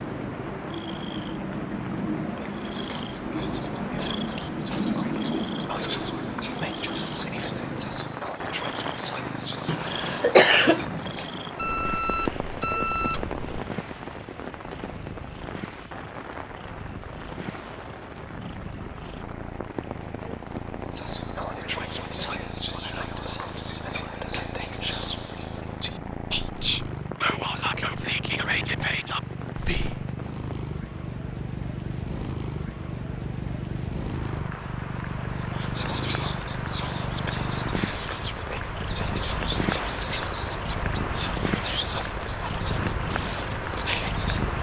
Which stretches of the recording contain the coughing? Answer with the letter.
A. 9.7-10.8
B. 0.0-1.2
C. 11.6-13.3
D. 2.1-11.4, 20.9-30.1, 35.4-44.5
A.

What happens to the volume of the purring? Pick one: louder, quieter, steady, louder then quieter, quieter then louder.
louder.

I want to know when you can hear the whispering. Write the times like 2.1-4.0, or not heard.
2.1-11.4, 20.9-30.1, 35.4-44.5.